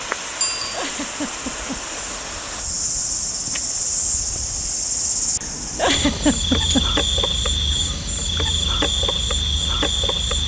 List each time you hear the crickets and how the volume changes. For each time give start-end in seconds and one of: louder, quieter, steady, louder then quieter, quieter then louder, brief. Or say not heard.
0.0-10.4 louder.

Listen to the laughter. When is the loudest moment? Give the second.
6 s.